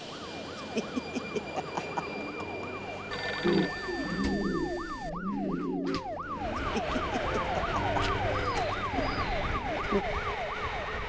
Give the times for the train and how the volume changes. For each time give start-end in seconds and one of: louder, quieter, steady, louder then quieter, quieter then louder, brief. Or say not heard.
0.0-4.0 steady
6.2-11.0 steady.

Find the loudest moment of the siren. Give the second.
8 s.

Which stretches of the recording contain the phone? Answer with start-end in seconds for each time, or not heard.
3.1-5.1.